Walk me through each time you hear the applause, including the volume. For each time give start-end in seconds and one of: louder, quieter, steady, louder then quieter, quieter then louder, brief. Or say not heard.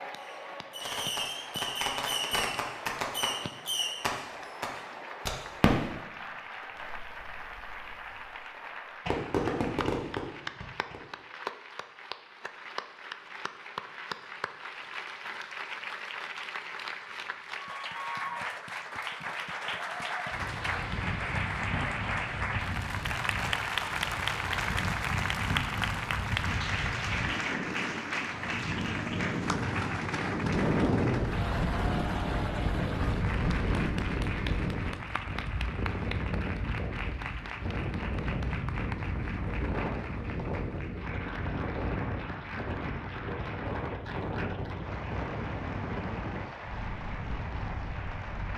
0.0-48.5 louder then quieter.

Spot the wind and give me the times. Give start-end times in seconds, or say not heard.
20.3-48.5.